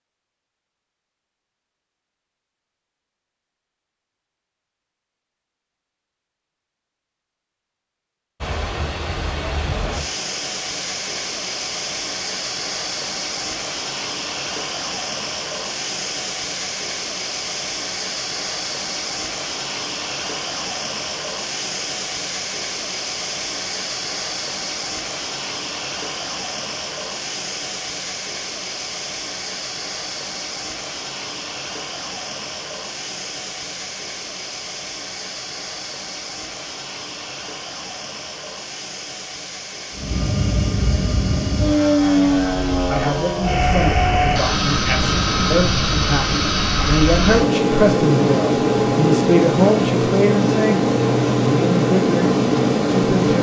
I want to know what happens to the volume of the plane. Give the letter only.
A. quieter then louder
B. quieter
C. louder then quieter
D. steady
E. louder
D.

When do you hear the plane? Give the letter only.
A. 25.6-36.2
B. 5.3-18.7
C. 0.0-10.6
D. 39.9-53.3
D.